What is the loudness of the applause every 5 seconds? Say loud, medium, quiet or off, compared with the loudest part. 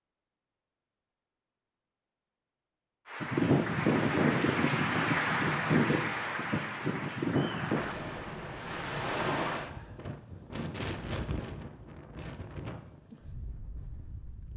loud, loud, off.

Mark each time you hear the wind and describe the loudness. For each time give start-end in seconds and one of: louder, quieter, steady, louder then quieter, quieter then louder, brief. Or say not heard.
3.2-14.5 quieter.